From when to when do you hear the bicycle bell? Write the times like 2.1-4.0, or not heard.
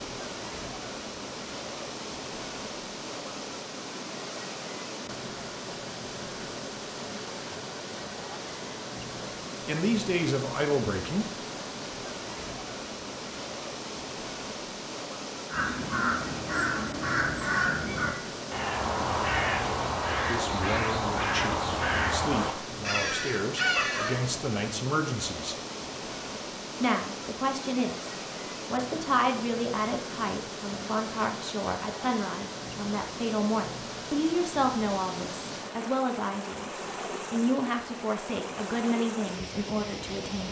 not heard.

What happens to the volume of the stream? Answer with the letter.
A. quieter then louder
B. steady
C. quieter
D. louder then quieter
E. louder
B.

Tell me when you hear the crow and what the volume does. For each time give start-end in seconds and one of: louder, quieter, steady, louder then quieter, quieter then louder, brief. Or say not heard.
15.5-24.2 steady.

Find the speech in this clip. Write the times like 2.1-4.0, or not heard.
9.7-11.4, 20.1-25.6, 26.8-40.4.